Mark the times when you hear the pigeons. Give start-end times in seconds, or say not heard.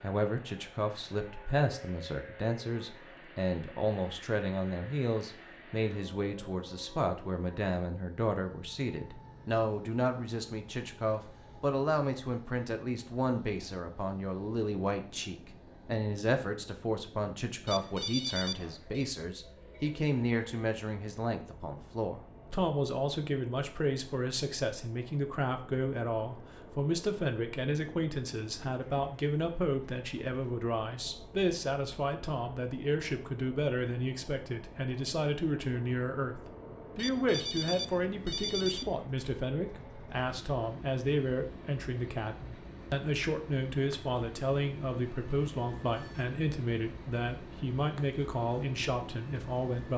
not heard.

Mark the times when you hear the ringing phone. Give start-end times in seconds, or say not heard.
17.6-19.1, 37.0-38.9.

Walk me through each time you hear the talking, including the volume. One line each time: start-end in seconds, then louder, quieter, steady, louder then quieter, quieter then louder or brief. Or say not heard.
0.0-49.9 steady.